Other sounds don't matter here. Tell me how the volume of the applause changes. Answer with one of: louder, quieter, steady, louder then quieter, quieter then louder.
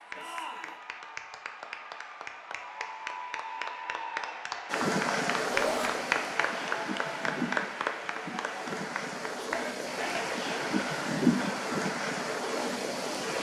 louder then quieter.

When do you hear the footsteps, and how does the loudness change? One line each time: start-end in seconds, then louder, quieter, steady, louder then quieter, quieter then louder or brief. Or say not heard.
not heard.